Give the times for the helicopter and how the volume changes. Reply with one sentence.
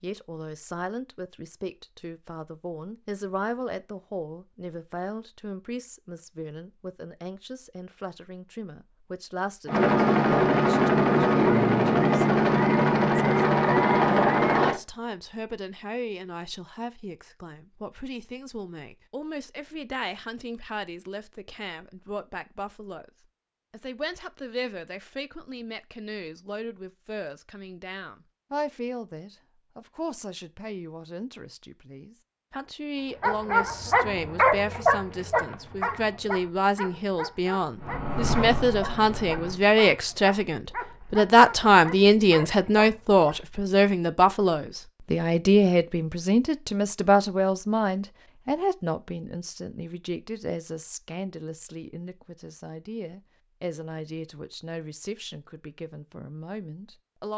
The helicopter can be heard from 9.7 to 14.8 s, at a steady volume; and briefly from 37.8 to 39.6 s.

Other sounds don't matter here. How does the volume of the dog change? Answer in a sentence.
The volume of the dog goes down.